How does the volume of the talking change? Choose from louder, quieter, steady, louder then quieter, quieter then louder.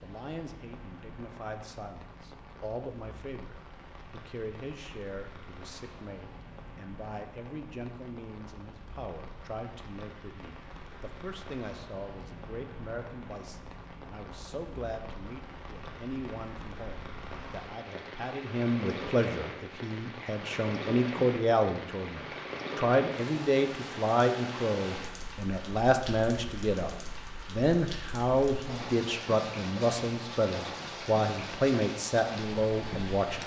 louder.